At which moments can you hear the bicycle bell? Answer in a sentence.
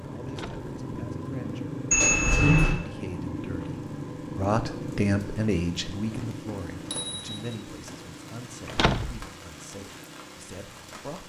You can hear the bicycle bell from 1.9 to 2.8 s and from 6.7 to 7.6 s.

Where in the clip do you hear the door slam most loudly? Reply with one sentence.
The volume of the door slam peaks at 9 seconds.